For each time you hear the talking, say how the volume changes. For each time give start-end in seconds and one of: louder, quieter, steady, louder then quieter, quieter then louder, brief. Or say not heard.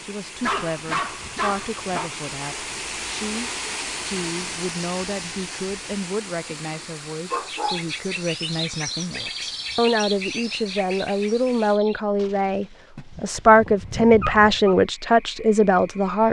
0.0-16.2 louder.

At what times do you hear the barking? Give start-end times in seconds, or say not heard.
0.4-2.1, 7.3-7.8, 12.9-14.8.